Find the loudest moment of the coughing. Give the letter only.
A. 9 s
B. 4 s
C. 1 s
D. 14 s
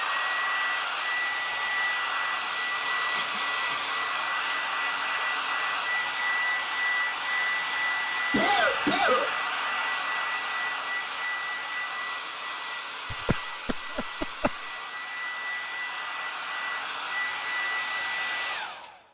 A.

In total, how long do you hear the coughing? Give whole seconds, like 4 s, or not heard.
3 s.